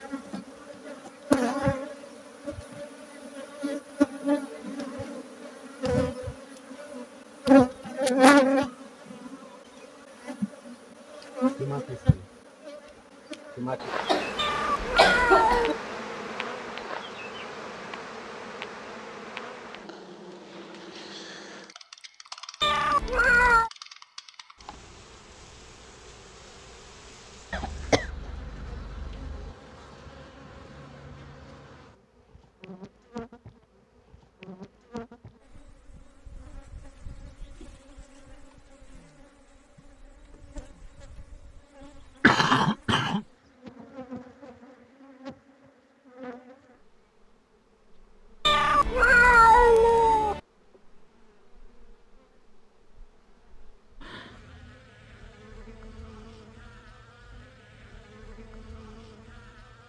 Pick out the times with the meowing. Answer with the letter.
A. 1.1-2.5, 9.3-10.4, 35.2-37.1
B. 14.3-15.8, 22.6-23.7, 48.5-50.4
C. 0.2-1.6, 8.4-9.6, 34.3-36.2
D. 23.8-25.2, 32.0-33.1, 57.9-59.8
B.